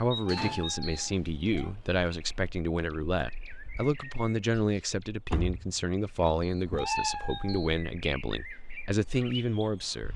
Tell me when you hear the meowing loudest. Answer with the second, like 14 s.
7 s.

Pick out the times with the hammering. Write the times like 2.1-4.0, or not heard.
not heard.